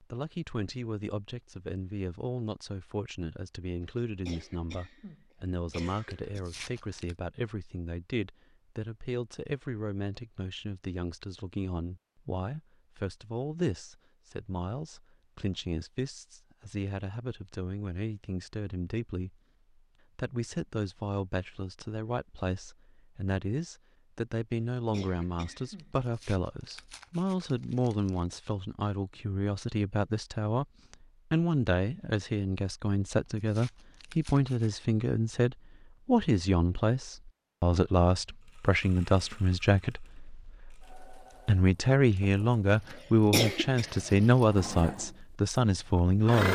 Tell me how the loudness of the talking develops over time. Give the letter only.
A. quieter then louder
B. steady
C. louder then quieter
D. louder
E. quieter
D.